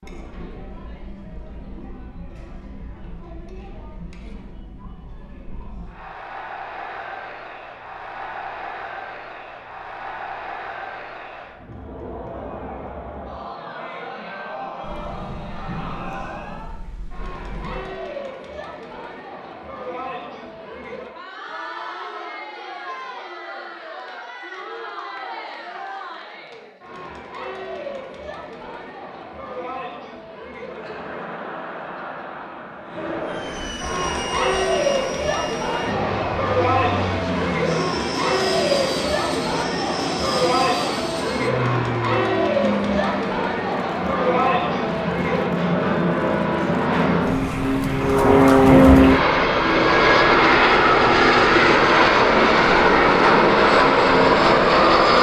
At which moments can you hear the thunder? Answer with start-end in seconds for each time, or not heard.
14.8-17.9, 48.0-49.2.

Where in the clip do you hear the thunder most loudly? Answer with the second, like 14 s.
49 s.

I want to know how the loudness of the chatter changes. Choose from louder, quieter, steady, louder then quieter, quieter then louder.
louder.